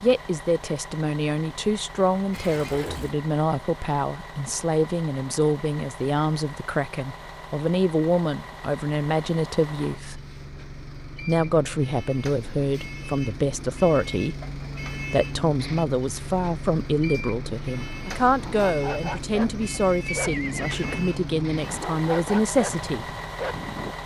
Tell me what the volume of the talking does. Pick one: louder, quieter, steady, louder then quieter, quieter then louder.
steady.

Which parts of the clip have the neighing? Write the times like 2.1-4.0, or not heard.
2.3-3.1, 20.1-21.1.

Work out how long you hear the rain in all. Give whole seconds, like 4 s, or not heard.
not heard.